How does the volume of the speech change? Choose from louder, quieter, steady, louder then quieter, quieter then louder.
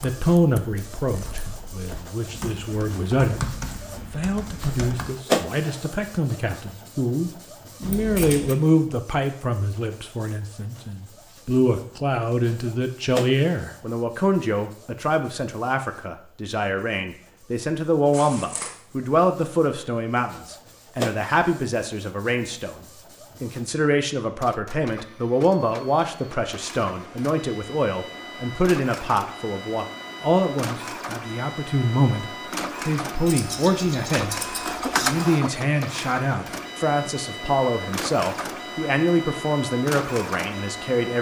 steady.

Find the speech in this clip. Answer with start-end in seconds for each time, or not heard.
0.0-3.5, 4.1-22.8, 23.4-41.1.